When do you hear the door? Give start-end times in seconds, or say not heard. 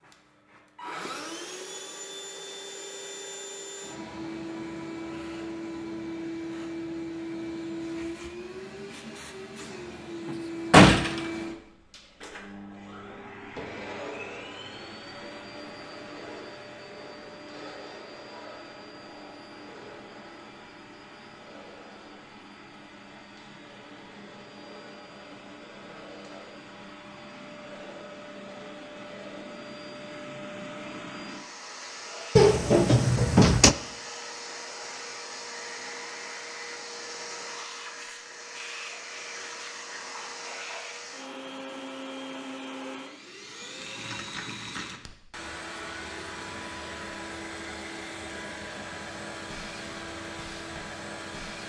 10.2-11.2, 32.4-33.8.